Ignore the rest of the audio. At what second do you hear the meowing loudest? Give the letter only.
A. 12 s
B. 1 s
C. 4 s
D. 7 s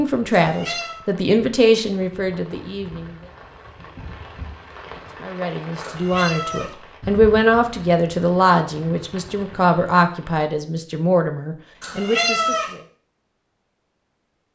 A.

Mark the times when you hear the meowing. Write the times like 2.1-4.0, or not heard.
0.3-1.0, 5.8-6.8, 11.8-12.8.